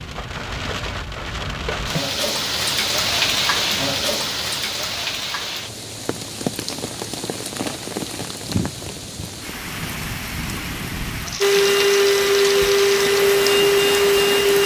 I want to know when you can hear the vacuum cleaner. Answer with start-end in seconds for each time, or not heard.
11.4-14.6.